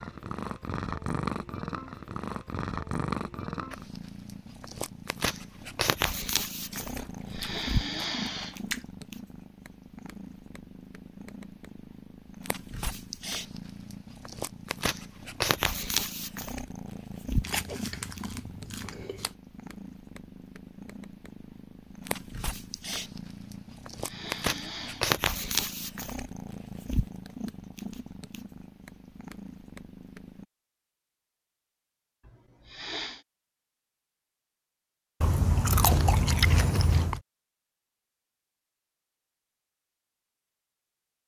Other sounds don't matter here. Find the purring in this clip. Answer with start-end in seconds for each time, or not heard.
0.0-30.4.